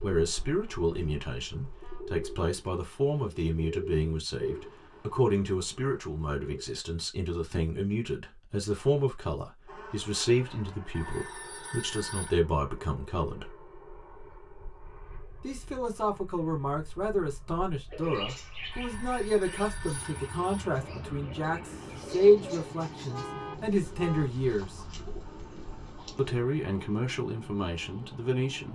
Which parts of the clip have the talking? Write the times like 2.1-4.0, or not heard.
0.0-13.5, 15.4-24.8, 26.1-28.7.